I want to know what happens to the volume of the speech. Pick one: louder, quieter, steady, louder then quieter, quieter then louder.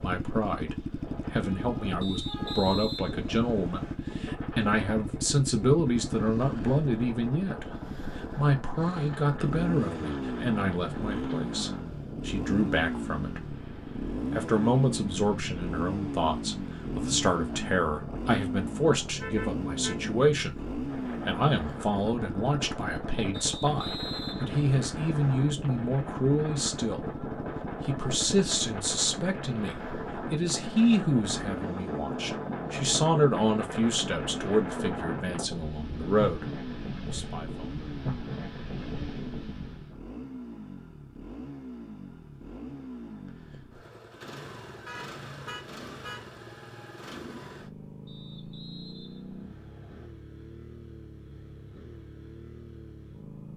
steady.